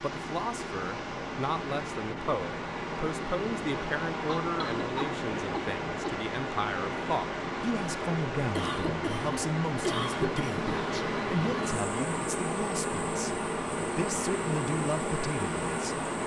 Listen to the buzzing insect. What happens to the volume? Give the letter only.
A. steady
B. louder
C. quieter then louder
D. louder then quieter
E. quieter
A.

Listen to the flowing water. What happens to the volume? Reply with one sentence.
The loudness of the flowing water stays about the same.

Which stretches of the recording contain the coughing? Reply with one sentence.
You can hear the coughing from 4.2 to 6.2 s and from 8.6 to 10.8 s.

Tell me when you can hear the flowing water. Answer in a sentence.
The flowing water can be heard from 0.0 to 16.2 s.